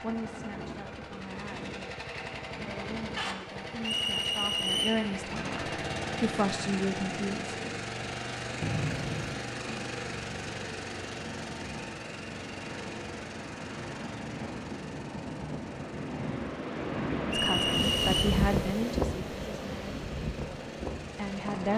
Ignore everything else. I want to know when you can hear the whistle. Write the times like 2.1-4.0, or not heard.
3.8-5.0, 8.6-9.4, 17.3-18.2.